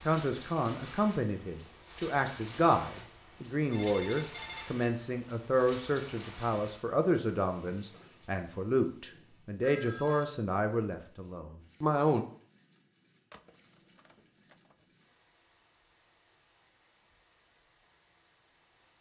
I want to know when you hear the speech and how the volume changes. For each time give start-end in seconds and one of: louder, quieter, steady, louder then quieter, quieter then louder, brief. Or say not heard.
0.1-12.2 steady.